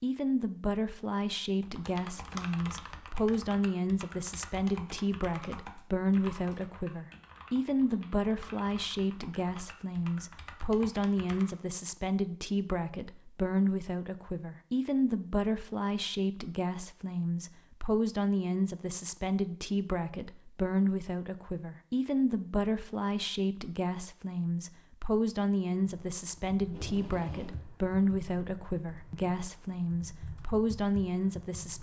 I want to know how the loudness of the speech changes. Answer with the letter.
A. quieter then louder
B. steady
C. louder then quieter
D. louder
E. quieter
B.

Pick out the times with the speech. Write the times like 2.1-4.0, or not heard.
0.0-31.7.